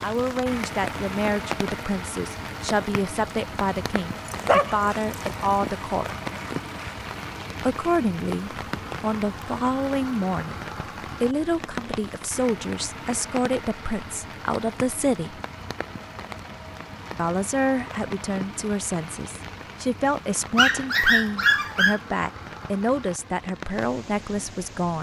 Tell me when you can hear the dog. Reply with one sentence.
You can hear the dog from 4.2 to 6.9 s and from 20.6 to 22.0 s.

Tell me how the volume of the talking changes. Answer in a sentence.
The volume of the talking stays about the same.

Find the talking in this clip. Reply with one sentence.
You can hear the talking from 0.0 to 6.1 s, from 7.6 to 10.6 s, from 11.2 to 15.4 s and from 17.1 to 24.9 s.